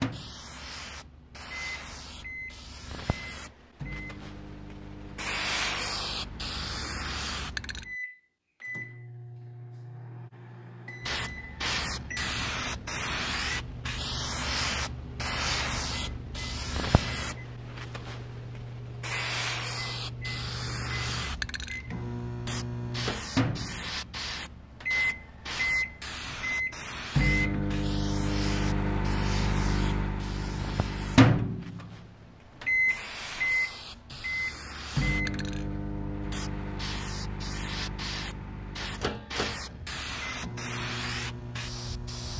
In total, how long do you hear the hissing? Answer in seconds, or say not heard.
39 s.